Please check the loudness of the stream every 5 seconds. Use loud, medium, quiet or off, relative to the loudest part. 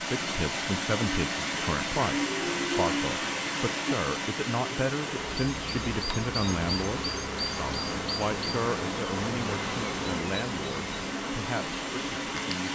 loud, medium, medium.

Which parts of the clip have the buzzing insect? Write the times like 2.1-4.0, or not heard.
5.0-12.7.